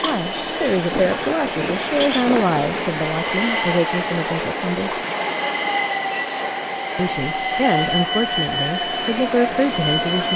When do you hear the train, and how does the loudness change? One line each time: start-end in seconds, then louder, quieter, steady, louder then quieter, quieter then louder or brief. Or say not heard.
0.0-10.3 steady.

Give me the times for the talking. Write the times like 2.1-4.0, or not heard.
0.0-5.0, 7.0-10.3.